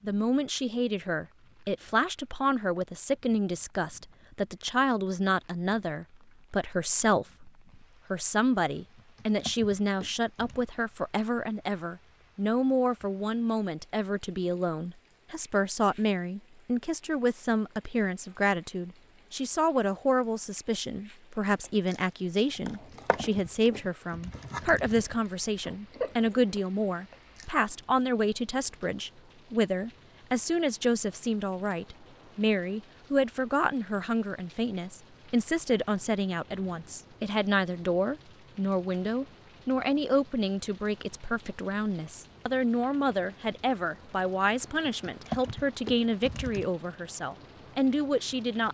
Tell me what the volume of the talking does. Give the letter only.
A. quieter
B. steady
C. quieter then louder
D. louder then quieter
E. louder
B.